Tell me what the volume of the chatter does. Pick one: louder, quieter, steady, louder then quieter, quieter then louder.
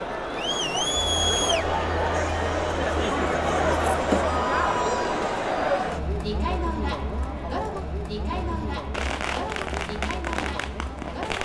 quieter.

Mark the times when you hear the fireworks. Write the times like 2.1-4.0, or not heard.
8.3-11.3.